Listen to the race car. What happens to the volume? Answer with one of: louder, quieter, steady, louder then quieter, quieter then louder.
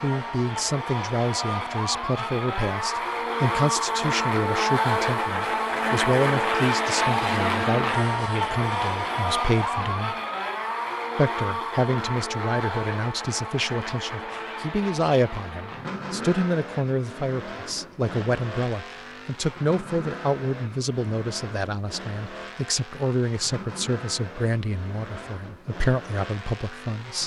quieter.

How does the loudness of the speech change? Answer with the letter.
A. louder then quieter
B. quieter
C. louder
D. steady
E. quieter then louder
D.